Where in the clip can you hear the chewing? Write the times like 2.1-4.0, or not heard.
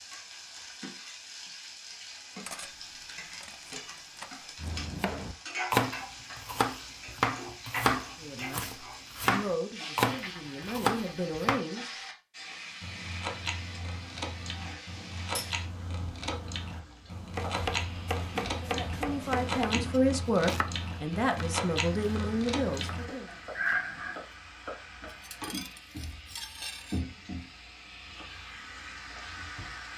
12.8-24.1.